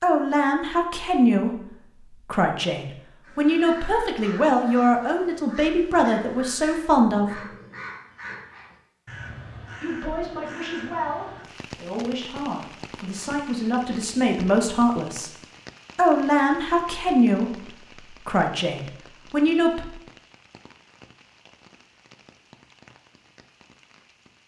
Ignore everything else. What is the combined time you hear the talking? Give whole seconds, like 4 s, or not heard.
17 s.